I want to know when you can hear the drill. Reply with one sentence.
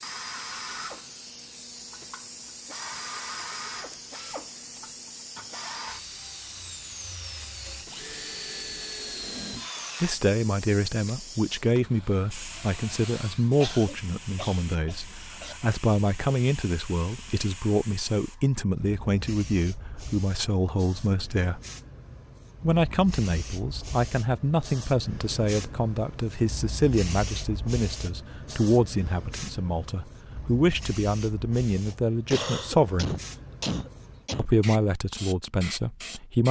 The drill can be heard from 0.0 to 13.6 s.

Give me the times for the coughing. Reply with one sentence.
The coughing can be heard from 13.6 to 15.6 s and from 31.9 to 34.5 s.